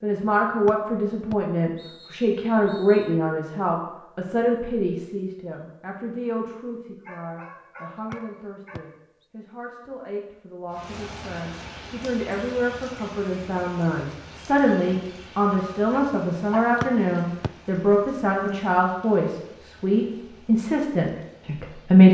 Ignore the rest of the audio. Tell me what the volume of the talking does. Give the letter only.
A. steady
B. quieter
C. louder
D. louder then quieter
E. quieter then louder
E.